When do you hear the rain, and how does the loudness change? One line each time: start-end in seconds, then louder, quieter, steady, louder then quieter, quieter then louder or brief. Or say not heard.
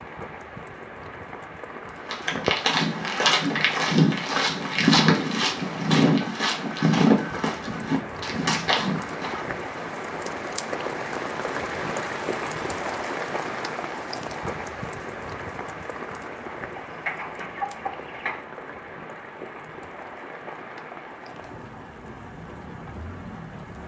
0.0-23.8 louder then quieter.